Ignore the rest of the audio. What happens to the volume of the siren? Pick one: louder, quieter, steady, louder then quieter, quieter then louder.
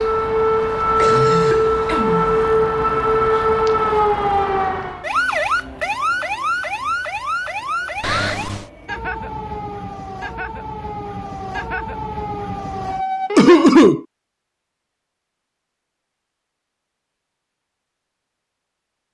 quieter.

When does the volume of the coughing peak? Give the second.
14 s.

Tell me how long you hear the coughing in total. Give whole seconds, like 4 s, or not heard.
3 s.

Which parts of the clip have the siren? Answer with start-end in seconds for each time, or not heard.
0.0-13.7.